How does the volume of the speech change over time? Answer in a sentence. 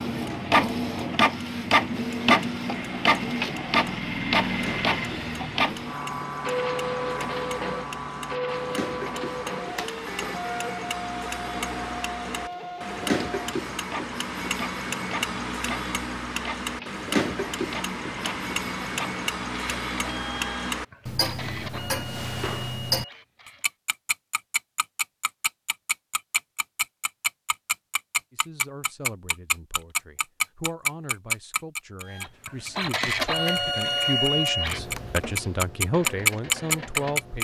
The loudness of the speech goes up.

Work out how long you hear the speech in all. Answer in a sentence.
The speech can be heard for 9 seconds in total.